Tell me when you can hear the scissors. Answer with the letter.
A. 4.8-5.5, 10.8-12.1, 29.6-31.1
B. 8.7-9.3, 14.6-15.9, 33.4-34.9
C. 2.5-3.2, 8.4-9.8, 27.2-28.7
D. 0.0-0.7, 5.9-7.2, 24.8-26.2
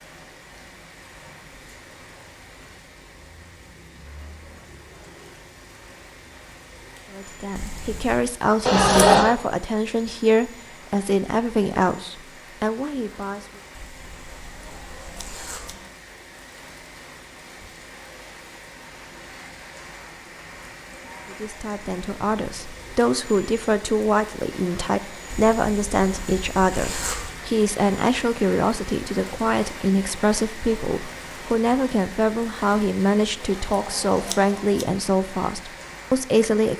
B.